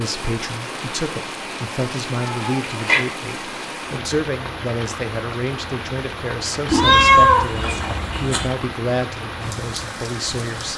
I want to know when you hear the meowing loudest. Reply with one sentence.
The volume of the meowing peaks at 7 seconds.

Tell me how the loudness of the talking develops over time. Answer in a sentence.
The loudness of the talking stays about the same.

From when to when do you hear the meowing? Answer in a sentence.
The meowing can be heard from 2.2 to 3.0 s and from 6.7 to 8.5 s.